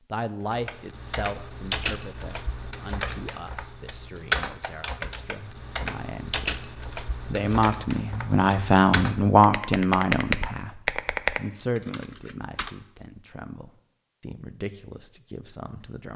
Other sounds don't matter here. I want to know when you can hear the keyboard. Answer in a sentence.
The keyboard can be heard from 0.5 to 12.8 s.